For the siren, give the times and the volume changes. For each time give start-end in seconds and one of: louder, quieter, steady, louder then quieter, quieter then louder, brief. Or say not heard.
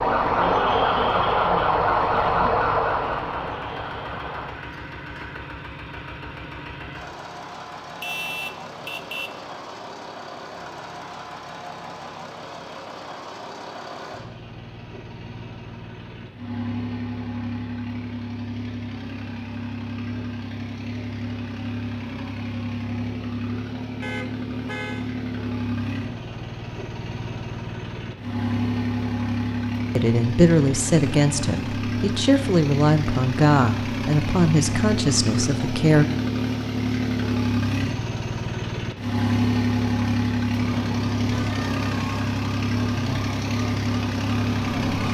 0.0-4.5 quieter
40.5-45.0 steady.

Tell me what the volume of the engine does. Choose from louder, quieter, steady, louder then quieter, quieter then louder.
louder.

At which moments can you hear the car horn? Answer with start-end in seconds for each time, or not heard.
8.0-9.4, 24.0-25.1, 41.3-42.1.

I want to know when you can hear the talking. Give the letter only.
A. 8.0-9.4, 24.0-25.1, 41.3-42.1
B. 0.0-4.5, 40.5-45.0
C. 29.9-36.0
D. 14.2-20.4
C.